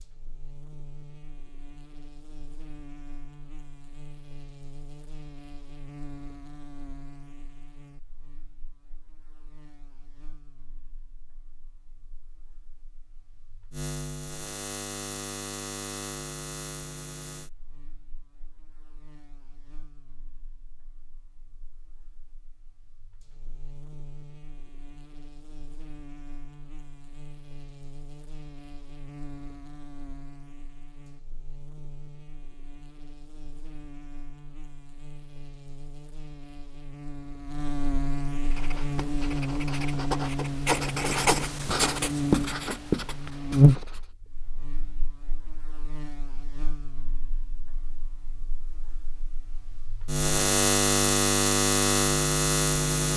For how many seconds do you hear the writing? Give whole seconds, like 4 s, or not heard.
6 s.